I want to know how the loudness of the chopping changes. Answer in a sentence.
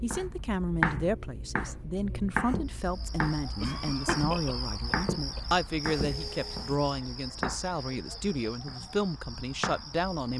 The loudness of the chopping goes down.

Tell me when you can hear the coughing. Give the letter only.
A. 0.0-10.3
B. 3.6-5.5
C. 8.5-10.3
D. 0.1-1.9
B.